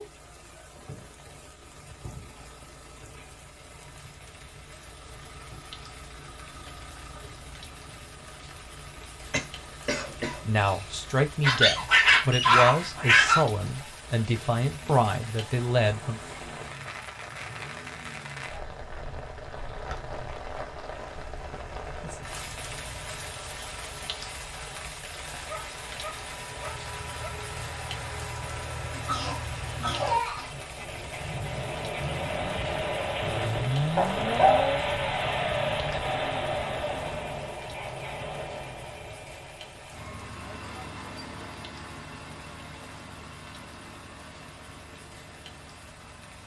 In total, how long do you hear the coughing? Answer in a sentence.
The coughing can be heard for 3 seconds in total.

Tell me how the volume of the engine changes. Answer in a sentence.
The volume of the engine goes up, then down.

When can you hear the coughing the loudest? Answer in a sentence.
The volume of the coughing peaks at 30 seconds.